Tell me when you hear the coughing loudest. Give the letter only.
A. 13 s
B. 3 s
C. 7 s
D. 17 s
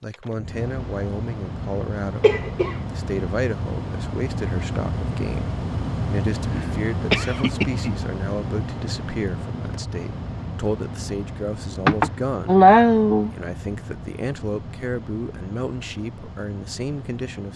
A.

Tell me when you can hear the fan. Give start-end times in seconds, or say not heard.
0.0-17.5.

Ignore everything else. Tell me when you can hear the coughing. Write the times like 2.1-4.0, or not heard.
2.2-2.8, 6.5-8.0, 11.8-13.3.